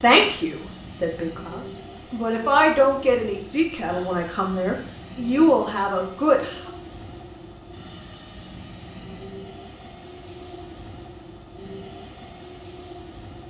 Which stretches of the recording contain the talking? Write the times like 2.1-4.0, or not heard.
0.0-6.6.